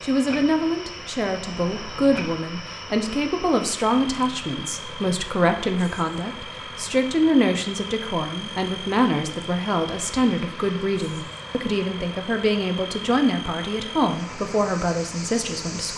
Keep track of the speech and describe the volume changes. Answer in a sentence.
The volume of the speech stays about the same.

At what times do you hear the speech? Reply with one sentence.
The speech can be heard from 0.0 to 15.9 s.